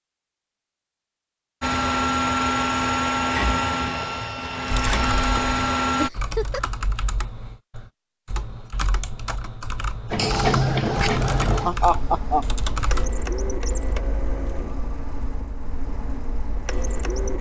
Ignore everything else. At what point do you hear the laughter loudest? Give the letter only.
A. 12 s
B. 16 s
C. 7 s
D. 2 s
A.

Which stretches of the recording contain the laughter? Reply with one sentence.
The laughter can be heard from 6.0 to 6.6 s and from 10.2 to 12.4 s.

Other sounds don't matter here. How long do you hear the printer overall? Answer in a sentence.
The printer can be heard for 12 seconds in total.